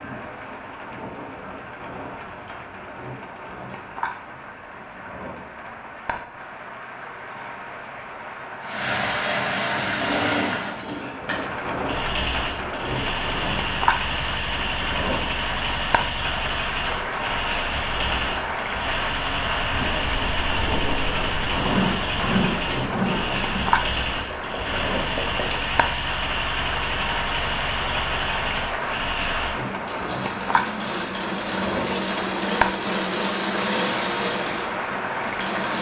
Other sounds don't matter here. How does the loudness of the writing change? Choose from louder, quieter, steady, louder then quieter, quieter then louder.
louder then quieter.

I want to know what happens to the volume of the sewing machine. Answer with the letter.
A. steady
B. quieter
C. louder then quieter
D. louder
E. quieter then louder
A.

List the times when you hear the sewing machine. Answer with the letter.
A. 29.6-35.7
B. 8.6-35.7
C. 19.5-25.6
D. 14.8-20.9
B.